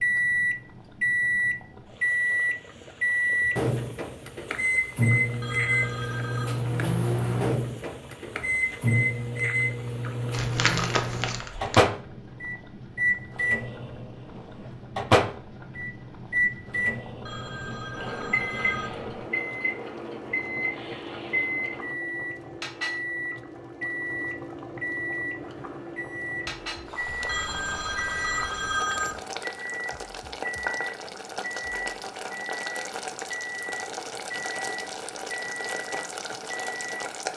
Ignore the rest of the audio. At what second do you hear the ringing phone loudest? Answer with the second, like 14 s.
29 s.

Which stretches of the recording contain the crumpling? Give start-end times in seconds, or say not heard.
10.3-11.8.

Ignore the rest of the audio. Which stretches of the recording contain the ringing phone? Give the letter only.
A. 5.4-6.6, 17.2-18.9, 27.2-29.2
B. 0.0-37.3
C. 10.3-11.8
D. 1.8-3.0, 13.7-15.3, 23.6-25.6
A.